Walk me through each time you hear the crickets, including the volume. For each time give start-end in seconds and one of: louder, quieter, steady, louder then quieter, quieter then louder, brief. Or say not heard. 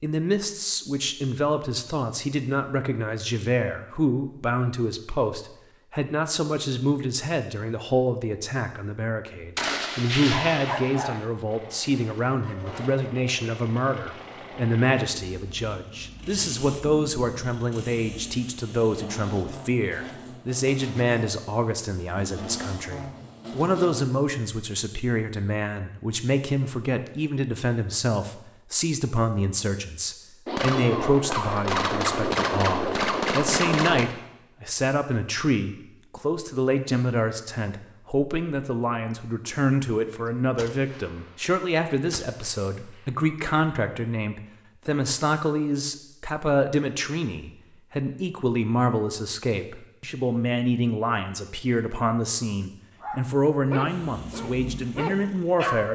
not heard.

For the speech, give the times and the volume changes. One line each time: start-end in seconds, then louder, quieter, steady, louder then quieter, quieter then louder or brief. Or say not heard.
0.0-55.8 steady.